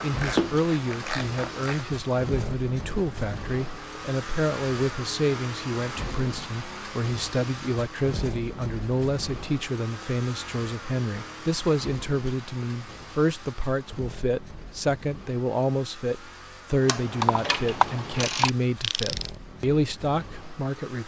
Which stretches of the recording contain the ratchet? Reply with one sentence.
You can hear the ratchet from 0.0 to 1.8 s and from 16.9 to 19.3 s.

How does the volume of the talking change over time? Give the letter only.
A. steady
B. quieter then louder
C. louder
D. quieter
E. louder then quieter
A.